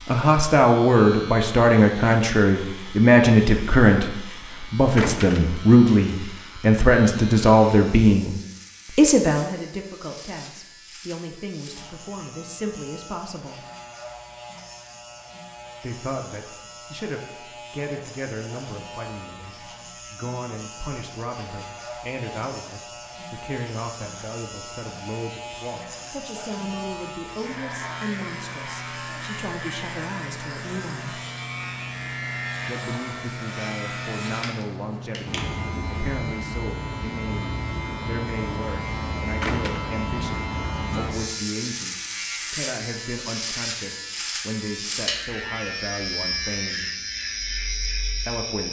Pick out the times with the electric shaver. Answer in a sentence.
The electric shaver can be heard from 0.0 to 48.6 s.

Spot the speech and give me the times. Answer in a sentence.
You can hear the speech from 0.1 to 8.3 s, from 8.9 to 13.7 s, from 15.8 to 31.2 s, from 32.6 to 46.9 s and from 48.0 to 48.6 s.